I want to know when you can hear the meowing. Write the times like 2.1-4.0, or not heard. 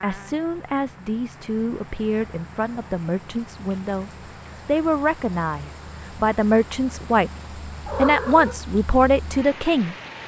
7.8-8.6.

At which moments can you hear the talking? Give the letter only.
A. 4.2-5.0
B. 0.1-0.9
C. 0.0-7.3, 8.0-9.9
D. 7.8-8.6
C.